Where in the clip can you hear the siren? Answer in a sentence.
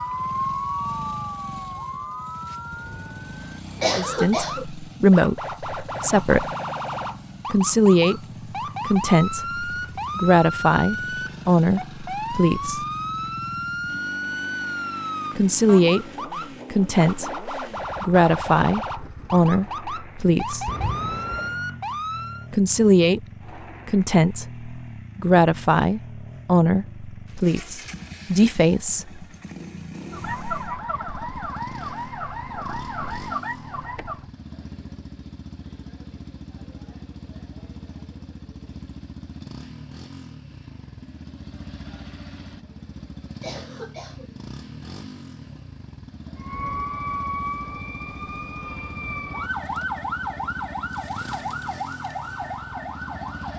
You can hear the siren from 0.0 to 22.4 s, from 30.1 to 34.2 s and from 46.4 to 53.5 s.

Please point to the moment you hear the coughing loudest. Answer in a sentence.
The loudest moment of the coughing is at 4 seconds.